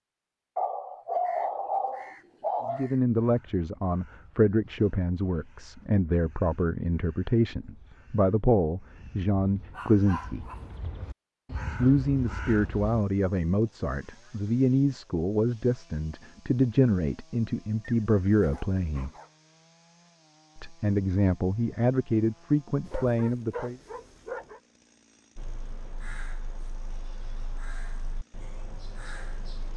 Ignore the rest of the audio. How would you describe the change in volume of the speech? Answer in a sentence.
The volume of the speech stays about the same.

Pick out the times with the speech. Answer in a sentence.
You can hear the speech from 2.6 to 10.4 s, from 11.8 to 19.1 s and from 20.6 to 23.8 s.